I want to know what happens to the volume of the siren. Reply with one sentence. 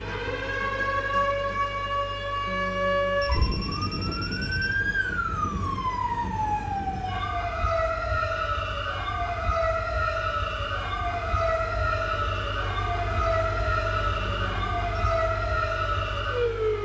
The volume of the siren stays about the same.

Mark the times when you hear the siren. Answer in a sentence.
You can hear the siren from 0.0 to 16.7 s.